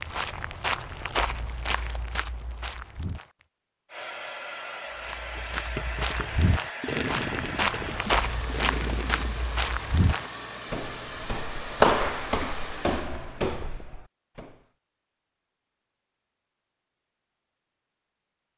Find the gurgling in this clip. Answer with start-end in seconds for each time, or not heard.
5.3-9.5.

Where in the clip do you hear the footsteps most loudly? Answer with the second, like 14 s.
12 s.